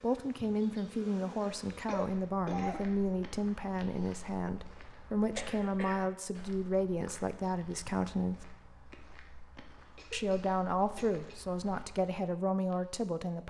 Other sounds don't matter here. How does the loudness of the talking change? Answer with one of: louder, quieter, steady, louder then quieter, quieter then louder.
steady.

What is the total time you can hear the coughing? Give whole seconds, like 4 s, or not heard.
3 s.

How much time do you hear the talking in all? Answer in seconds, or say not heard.
12 s.